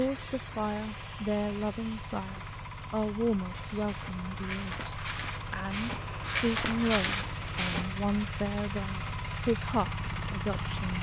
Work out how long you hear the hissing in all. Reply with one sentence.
The hissing can be heard for 8 seconds in total.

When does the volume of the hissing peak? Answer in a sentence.
The loudest moment of the hissing is at 7 seconds.